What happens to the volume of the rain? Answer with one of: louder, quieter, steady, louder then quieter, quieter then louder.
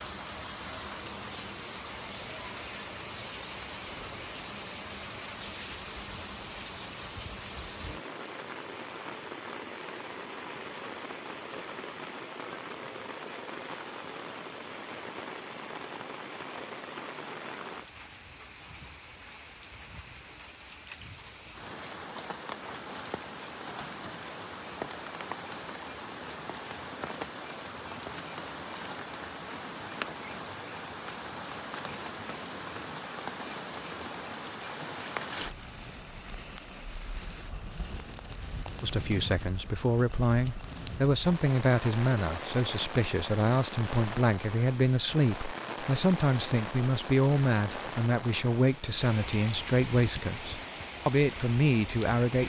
steady.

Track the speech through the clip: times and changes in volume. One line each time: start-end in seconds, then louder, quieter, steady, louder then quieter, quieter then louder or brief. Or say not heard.
38.8-52.4 steady.